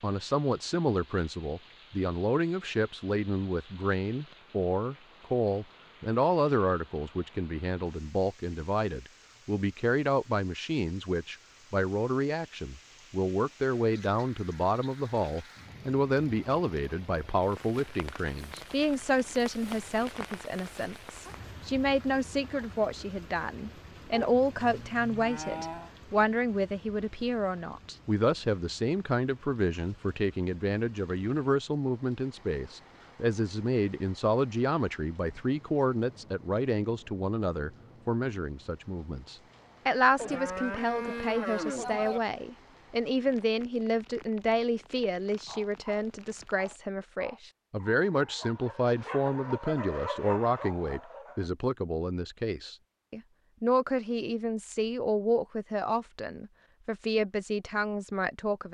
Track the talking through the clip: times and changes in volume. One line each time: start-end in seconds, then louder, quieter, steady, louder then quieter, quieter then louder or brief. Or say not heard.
0.0-58.7 steady.